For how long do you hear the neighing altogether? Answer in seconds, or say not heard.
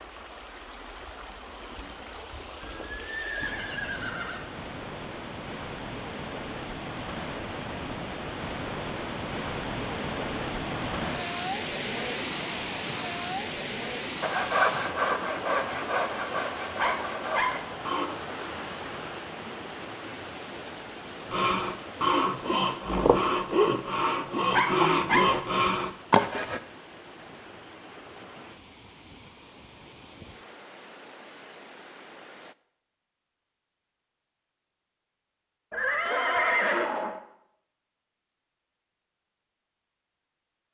4 s.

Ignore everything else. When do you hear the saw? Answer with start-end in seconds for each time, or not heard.
14.2-18.1, 21.3-26.6.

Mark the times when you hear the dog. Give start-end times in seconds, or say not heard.
16.8-17.5, 24.5-25.2.